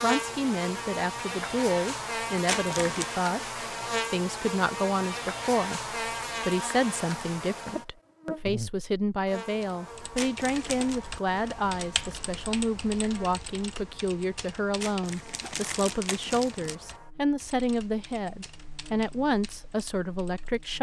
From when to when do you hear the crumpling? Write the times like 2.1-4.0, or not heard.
2.5-3.1, 10.2-11.0, 14.8-16.8.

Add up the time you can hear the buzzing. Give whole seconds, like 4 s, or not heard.
21 s.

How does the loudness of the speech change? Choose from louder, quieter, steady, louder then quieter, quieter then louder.
steady.